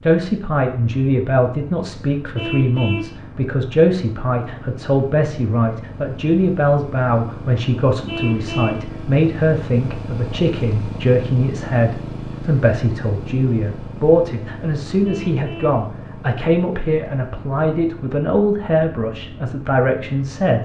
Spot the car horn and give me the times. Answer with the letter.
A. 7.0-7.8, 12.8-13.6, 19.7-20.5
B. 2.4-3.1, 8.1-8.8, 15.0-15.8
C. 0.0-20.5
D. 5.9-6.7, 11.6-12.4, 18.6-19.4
B.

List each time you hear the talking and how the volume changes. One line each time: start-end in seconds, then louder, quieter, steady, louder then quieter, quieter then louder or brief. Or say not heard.
0.0-20.5 steady.